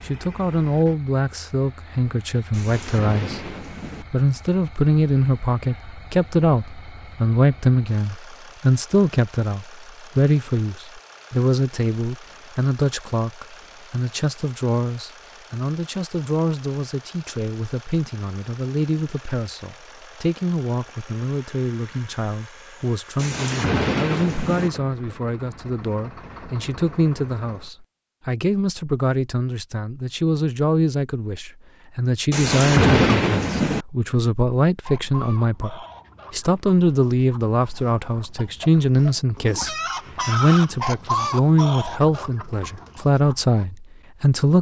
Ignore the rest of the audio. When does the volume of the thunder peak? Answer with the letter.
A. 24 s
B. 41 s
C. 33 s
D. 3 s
C.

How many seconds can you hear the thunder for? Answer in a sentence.
The thunder can be heard for 5 seconds in total.